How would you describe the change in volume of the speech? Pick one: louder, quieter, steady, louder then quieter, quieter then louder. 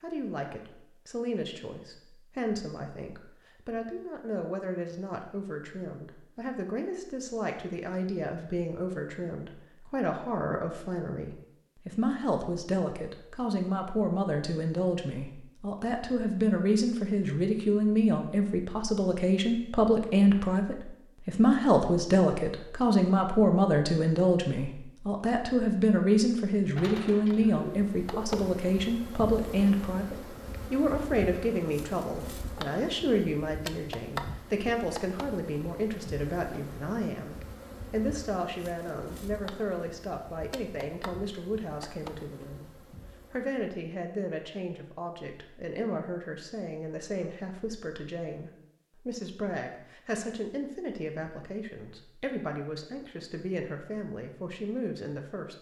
louder then quieter.